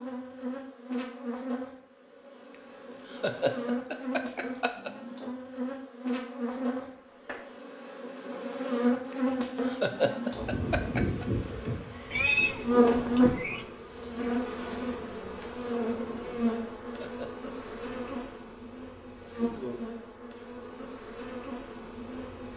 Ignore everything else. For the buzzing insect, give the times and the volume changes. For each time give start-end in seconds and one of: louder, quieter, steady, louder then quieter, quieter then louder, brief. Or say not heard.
0.0-22.5 louder then quieter.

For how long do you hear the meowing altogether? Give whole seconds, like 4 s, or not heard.
2 s.